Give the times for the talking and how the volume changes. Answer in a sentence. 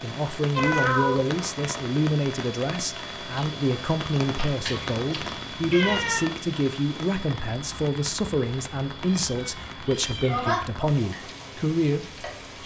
The talking can be heard from 0.0 to 12.6 s, at a steady volume.